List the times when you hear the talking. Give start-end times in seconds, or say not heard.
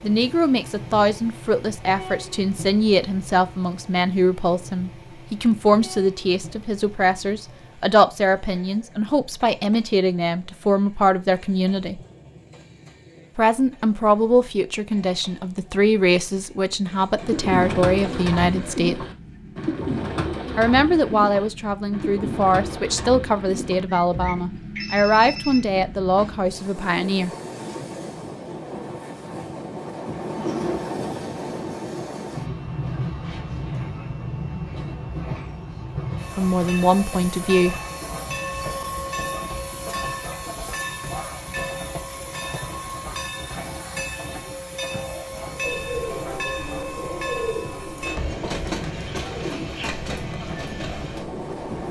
0.0-12.0, 13.3-19.1, 20.6-27.3, 36.4-37.8.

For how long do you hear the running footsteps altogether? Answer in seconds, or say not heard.
not heard.